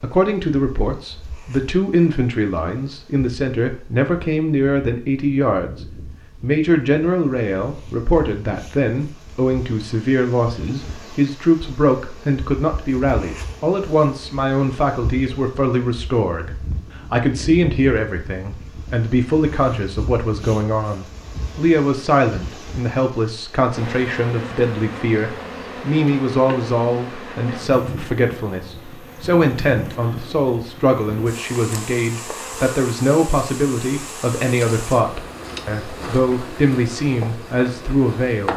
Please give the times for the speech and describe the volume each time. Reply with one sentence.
You can hear the speech from 0.0 to 38.5 s, at a steady volume.